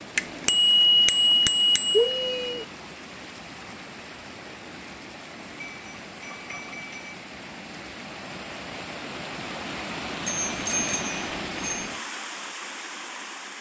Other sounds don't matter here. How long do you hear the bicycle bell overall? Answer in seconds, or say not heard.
6 s.